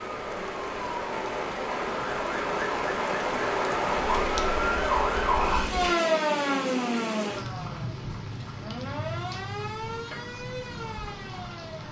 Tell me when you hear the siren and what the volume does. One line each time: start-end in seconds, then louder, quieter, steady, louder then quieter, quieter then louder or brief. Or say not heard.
0.0-11.8 louder then quieter.